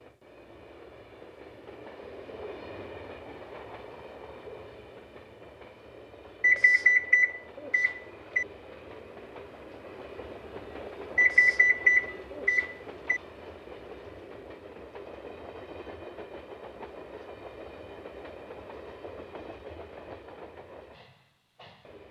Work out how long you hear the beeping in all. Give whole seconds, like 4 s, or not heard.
4 s.